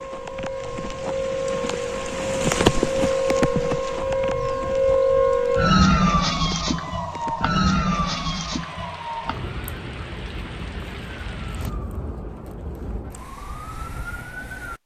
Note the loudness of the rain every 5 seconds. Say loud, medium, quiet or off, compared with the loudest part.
loud, quiet, quiet.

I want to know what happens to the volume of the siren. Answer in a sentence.
The volume of the siren goes up, then down.